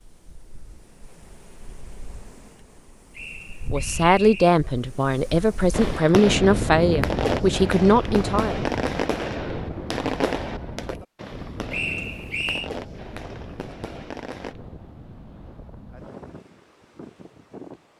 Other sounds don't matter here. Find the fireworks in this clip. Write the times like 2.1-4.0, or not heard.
5.7-14.6.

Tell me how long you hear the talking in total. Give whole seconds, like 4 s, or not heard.
5 s.